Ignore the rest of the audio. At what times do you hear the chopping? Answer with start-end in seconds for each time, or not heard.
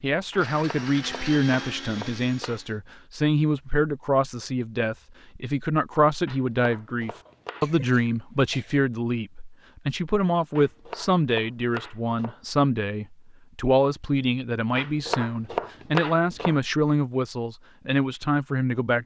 0.3-2.6, 6.2-7.7, 10.6-12.3, 14.8-16.6.